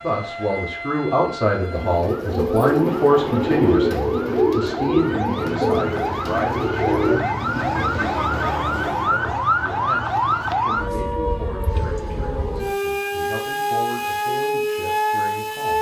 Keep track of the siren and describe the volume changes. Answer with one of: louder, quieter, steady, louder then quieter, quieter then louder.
louder.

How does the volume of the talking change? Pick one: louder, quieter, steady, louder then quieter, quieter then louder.
quieter.